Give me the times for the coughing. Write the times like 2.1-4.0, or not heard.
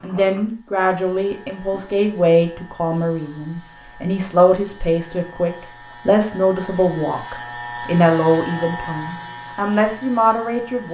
not heard.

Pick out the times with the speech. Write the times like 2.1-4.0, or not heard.
0.0-10.8.